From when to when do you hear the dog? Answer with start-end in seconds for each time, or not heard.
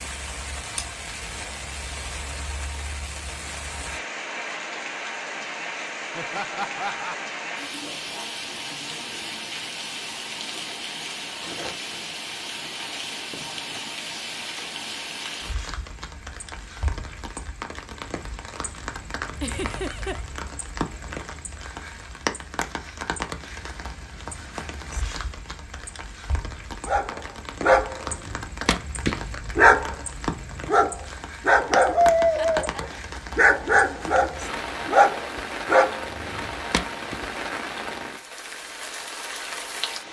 26.9-37.1.